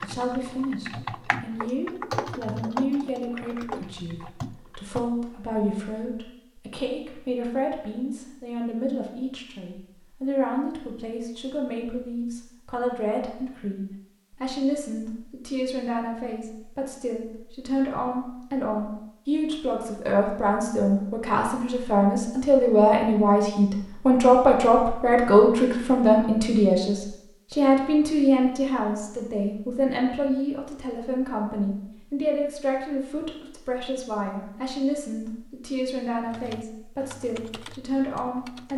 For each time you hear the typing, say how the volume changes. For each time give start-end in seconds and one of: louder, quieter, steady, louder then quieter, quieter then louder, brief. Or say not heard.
0.0-5.1 louder then quieter
36.2-38.7 brief.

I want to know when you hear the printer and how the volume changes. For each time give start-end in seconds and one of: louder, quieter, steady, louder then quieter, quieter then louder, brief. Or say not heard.
not heard.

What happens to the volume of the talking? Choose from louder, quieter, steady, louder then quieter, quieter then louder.
louder then quieter.